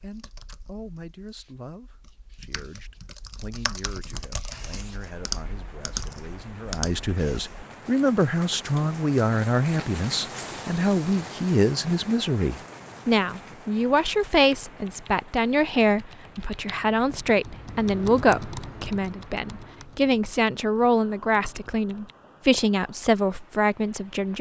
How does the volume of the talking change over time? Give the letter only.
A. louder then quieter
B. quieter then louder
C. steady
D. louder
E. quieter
D.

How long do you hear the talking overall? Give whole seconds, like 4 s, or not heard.
24 s.